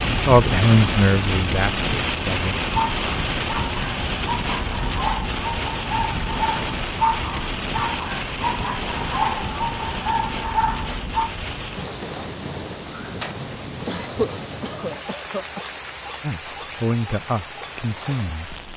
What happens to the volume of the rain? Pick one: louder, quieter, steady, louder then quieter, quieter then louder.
quieter.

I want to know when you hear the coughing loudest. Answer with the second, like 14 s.
14 s.